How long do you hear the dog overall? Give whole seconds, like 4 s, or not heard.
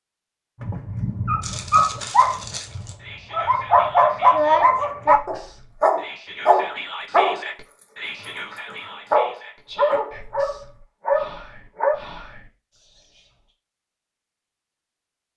11 s.